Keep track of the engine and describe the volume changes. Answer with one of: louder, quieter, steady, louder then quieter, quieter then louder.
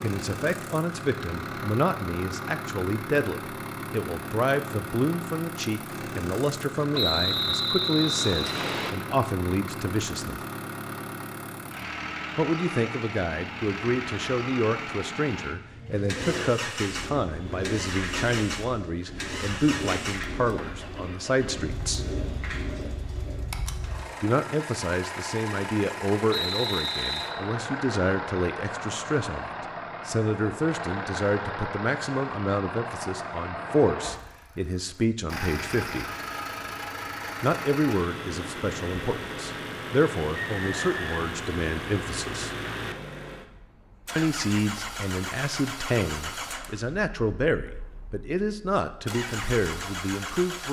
steady.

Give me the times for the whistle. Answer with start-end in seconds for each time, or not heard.
6.9-8.9, 26.3-27.4, 40.4-41.4.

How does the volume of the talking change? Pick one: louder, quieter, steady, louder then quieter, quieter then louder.
steady.